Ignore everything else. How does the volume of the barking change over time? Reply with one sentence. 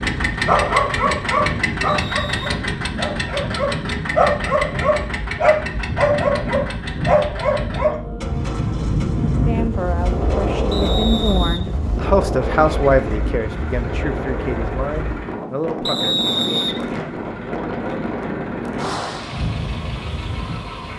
The volume of the barking goes down, then up.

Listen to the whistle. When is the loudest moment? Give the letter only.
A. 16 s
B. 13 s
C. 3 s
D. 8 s
A.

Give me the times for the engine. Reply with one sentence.
The engine can be heard from 0.0 to 20.9 s.